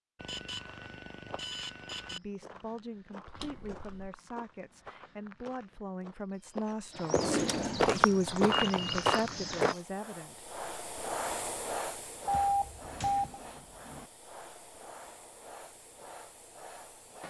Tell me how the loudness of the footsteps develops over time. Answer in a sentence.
The loudness of the footsteps goes up.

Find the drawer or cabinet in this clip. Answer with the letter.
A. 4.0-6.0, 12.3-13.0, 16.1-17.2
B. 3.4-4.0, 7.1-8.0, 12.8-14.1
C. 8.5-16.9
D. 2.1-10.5
B.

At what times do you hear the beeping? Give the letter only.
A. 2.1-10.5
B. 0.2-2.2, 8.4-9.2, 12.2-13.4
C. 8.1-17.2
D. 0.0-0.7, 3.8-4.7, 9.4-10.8
B.